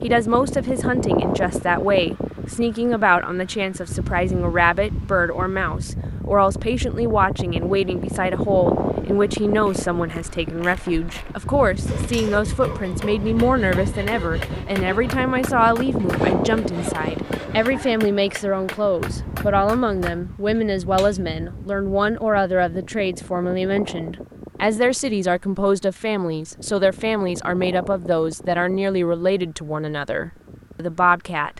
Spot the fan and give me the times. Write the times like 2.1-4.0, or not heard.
0.0-31.5.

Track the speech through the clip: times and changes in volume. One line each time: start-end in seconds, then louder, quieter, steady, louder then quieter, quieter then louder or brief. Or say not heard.
0.0-31.5 steady.